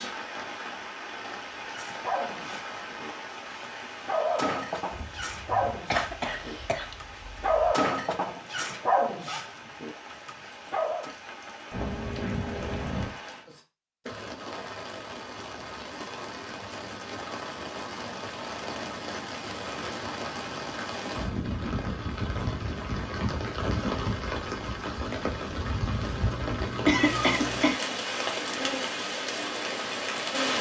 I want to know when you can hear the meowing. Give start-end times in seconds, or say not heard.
11.7-13.2, 26.1-27.8.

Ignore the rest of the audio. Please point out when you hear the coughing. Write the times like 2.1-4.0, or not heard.
5.9-7.8, 26.9-27.8.